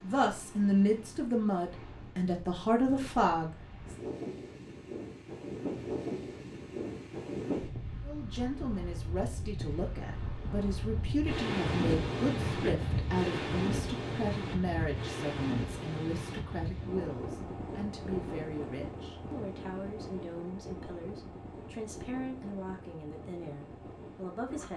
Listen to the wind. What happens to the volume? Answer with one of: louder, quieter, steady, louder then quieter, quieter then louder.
louder then quieter.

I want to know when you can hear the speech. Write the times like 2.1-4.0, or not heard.
0.0-3.6, 8.0-24.7.